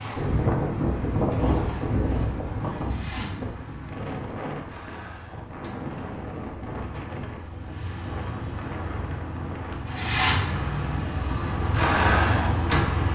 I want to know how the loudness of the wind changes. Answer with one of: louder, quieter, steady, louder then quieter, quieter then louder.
quieter.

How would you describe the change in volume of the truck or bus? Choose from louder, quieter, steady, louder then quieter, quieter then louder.
louder.